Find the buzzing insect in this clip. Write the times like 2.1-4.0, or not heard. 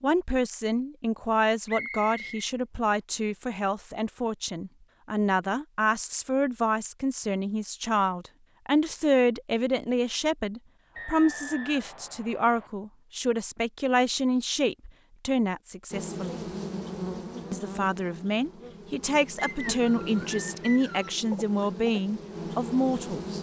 15.9-23.3.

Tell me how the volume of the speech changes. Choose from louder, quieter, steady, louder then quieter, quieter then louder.
steady.